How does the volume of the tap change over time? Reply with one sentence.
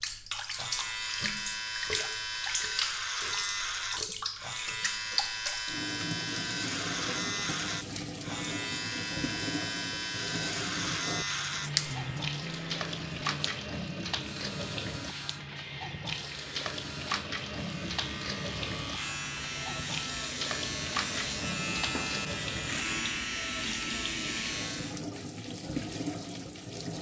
The loudness of the tap stays about the same.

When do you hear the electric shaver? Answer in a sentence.
The electric shaver can be heard from 0.0 to 25.0 s.